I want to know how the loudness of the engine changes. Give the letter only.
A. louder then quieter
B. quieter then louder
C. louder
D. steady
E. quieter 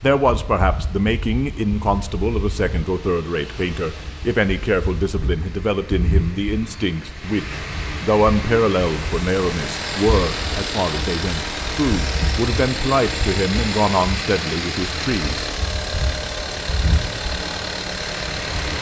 D.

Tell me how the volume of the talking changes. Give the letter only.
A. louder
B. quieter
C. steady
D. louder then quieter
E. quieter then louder
C.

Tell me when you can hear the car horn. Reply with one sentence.
You can't hear the car horn here.